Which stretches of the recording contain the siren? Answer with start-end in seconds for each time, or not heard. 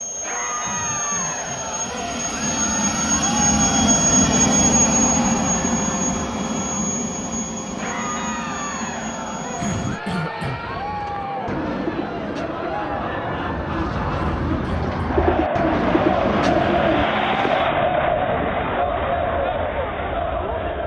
not heard.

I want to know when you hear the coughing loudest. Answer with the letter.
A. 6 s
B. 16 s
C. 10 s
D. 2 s
C.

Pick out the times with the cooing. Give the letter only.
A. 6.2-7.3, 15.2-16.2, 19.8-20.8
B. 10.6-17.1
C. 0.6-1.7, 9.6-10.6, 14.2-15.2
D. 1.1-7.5
B.